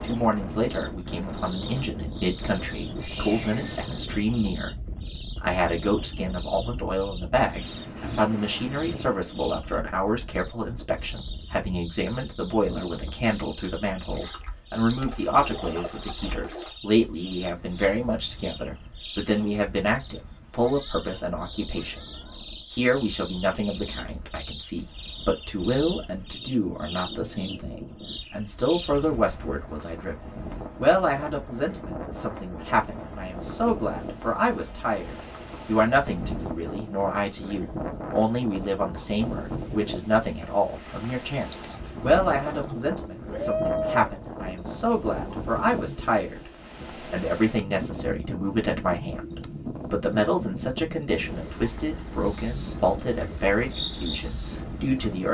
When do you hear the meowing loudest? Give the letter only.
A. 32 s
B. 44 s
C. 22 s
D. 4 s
B.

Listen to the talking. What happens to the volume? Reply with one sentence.
The loudness of the talking stays about the same.